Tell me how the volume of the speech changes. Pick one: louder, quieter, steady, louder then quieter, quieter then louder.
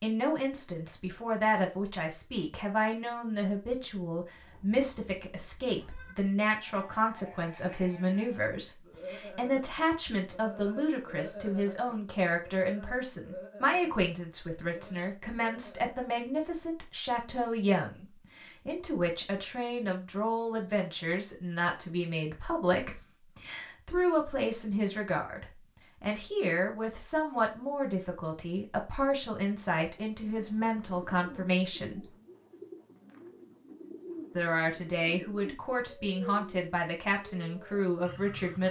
steady.